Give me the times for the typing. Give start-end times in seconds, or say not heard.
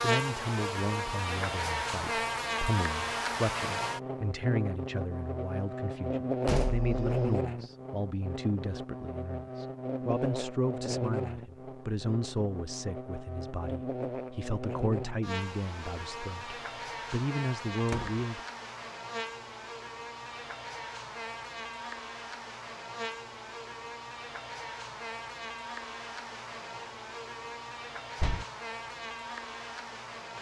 not heard.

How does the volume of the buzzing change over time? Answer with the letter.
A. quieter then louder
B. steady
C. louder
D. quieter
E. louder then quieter
D.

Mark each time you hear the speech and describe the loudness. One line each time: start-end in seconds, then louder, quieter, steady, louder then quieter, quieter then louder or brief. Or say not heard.
0.0-18.4 steady.